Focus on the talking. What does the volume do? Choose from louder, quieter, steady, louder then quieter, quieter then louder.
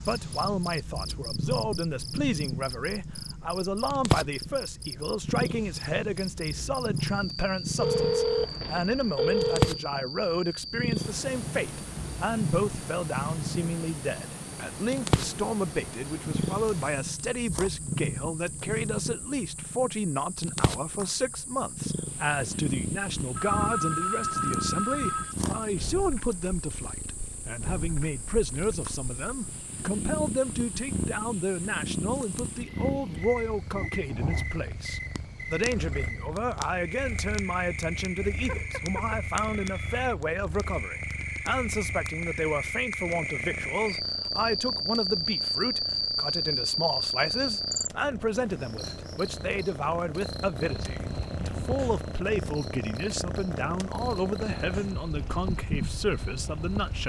steady.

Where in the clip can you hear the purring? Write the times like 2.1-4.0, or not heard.
0.0-57.0.